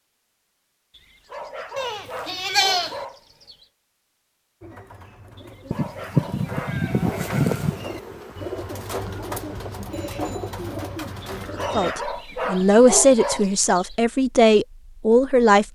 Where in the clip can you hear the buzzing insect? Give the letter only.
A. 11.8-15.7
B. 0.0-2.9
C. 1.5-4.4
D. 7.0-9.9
D.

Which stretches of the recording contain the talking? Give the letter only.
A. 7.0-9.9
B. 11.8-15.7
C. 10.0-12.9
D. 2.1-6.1
B.